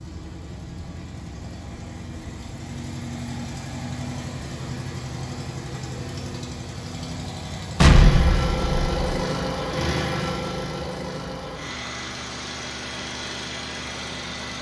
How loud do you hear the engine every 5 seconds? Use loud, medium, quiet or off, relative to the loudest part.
medium, loud, loud.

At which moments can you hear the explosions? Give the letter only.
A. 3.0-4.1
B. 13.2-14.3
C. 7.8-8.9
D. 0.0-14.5
C.